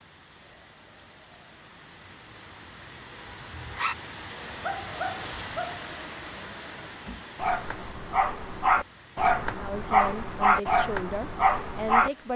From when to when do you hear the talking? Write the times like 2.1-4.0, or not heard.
9.6-12.3.